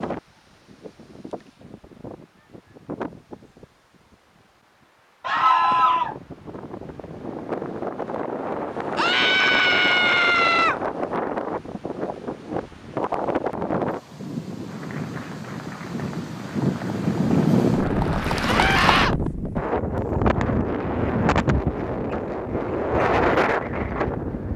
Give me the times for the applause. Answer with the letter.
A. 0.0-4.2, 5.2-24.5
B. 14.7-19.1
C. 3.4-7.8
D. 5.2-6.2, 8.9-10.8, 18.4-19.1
B.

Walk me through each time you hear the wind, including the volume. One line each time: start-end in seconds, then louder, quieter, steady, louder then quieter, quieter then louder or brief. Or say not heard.
0.0-4.2 louder then quieter
5.2-24.5 louder.